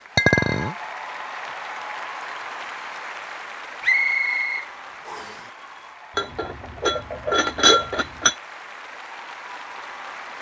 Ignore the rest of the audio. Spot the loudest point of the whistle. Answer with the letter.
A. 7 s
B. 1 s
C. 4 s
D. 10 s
C.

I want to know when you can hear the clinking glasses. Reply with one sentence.
You can hear the clinking glasses from 0.1 to 0.8 s and from 6.2 to 8.3 s.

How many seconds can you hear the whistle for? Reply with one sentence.
The whistle can be heard for 2 seconds in total.